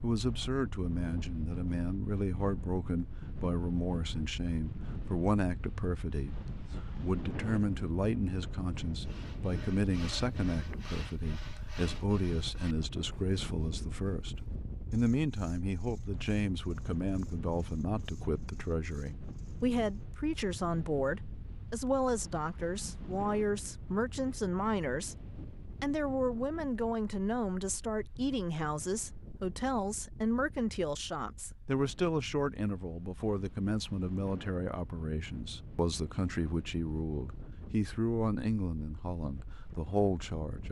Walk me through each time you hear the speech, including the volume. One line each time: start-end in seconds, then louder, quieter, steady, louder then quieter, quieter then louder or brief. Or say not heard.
0.0-40.6 steady.